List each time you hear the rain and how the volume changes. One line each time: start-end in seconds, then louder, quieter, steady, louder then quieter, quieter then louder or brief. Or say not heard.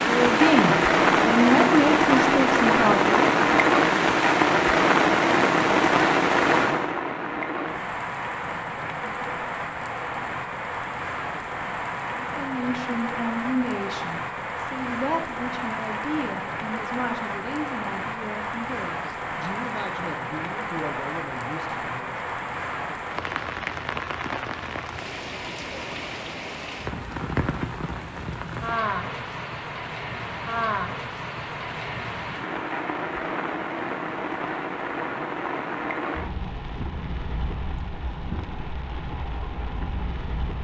0.0-40.5 quieter.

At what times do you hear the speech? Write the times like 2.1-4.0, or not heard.
0.0-3.1, 12.2-22.2.